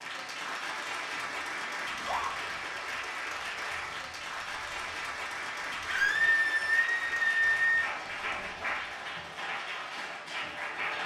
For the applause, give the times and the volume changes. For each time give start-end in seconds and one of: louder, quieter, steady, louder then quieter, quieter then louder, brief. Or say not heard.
0.0-11.0 steady.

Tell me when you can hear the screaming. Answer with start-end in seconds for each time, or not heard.
1.9-2.3, 5.8-7.8.